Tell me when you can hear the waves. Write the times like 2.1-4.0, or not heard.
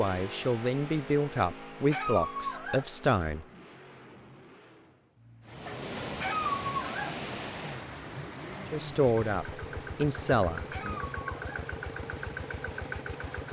5.5-13.4.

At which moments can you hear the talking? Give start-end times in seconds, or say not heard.
0.0-3.5, 8.7-11.0.